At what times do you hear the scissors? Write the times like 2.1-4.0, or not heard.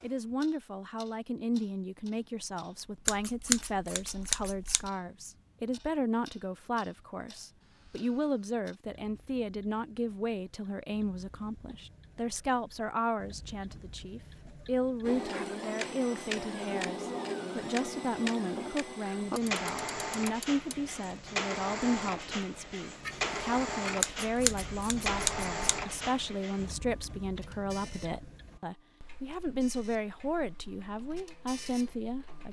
3.0-4.9, 24.0-25.9.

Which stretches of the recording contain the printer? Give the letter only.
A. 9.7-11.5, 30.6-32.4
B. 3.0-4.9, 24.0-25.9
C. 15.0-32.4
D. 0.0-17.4
C.